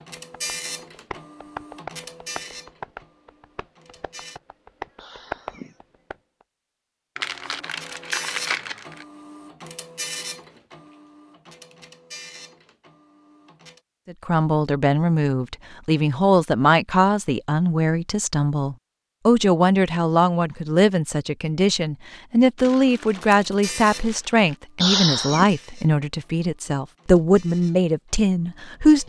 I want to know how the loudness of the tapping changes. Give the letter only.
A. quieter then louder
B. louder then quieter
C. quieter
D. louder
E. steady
A.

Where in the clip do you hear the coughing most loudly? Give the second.
25 s.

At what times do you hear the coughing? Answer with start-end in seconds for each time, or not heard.
5.0-5.8, 24.8-25.5.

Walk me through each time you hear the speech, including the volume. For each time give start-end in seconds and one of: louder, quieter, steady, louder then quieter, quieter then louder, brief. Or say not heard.
14.1-29.0 steady.